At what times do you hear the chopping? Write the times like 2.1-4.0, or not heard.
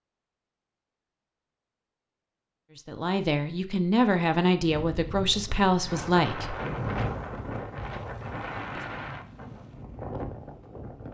not heard.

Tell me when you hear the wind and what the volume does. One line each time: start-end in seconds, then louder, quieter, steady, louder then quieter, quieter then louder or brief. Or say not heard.
4.6-11.0 louder then quieter.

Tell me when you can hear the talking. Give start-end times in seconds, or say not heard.
2.8-6.5.